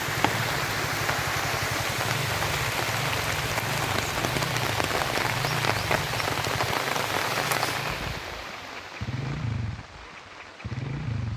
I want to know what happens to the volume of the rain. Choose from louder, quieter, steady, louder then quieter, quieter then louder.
quieter.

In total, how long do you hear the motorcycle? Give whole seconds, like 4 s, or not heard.
11 s.